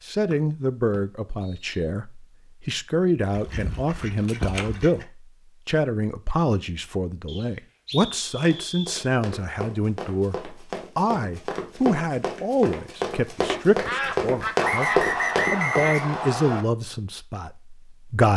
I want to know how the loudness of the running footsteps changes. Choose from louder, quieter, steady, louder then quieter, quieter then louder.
louder.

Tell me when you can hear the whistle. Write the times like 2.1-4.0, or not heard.
0.3-1.7, 7.2-9.1, 14.6-16.6.